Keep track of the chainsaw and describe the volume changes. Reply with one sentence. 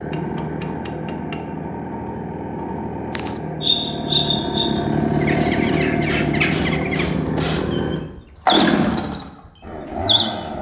The loudness of the chainsaw goes up.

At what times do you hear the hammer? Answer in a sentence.
You can hear the hammer from 0.1 to 1.4 s and from 5.7 to 7.8 s.